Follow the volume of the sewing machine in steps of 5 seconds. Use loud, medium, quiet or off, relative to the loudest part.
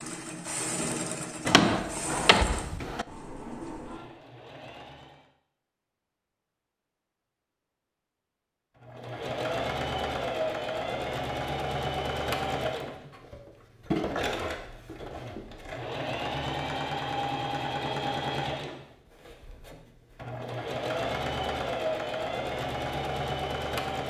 medium, loud, loud, loud, loud.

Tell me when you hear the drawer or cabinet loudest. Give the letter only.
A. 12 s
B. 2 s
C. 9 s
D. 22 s
B.